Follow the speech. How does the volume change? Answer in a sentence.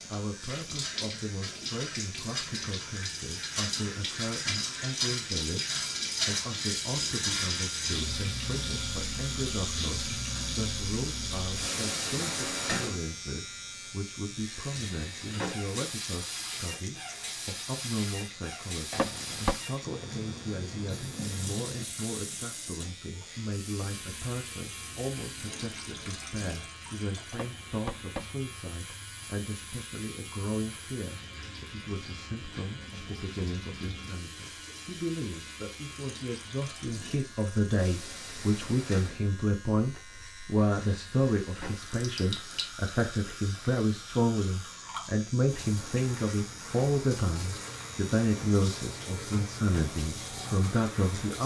The volume of the speech goes up.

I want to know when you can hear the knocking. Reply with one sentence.
The knocking can be heard from 18.9 to 19.6 s and from 27.3 to 28.4 s.